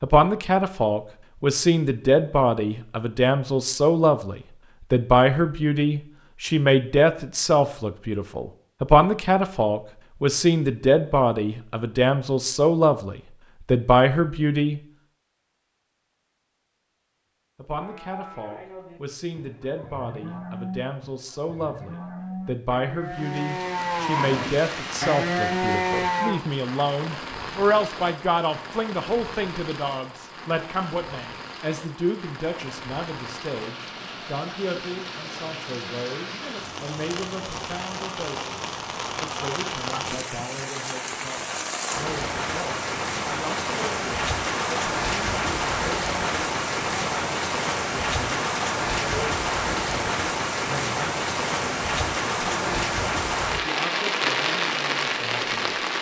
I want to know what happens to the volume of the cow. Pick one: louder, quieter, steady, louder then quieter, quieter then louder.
louder.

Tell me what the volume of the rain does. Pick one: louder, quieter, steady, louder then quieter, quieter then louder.
louder.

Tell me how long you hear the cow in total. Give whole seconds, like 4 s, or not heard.
9 s.